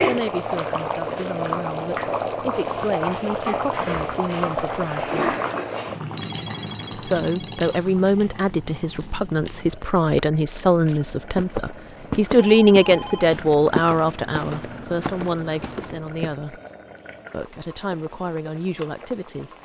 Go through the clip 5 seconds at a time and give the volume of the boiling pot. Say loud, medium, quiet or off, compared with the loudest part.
loud, medium, quiet, quiet.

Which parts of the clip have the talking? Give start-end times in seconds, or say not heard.
0.0-5.3, 7.0-16.6, 17.3-19.5.